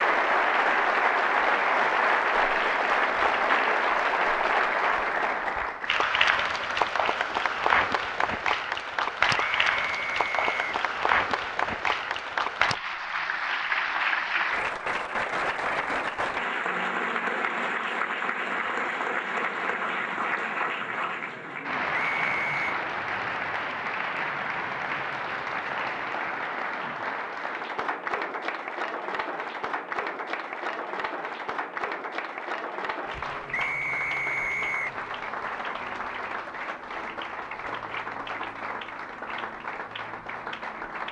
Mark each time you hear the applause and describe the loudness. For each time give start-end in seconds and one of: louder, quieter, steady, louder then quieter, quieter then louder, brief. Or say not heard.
0.0-41.0 quieter.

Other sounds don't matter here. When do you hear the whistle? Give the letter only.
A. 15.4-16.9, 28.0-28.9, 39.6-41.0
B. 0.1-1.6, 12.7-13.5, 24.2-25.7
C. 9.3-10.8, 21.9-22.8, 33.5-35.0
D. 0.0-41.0
C.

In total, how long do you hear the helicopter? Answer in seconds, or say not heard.
not heard.